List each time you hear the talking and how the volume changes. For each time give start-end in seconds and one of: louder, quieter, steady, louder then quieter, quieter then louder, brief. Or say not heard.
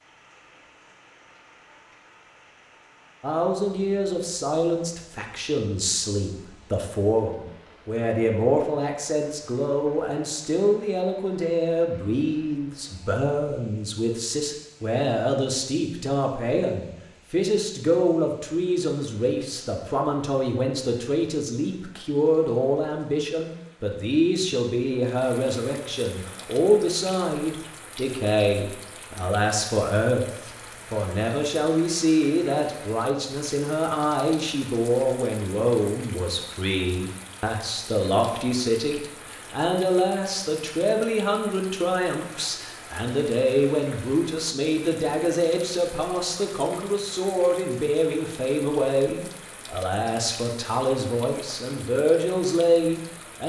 3.2-53.4 steady.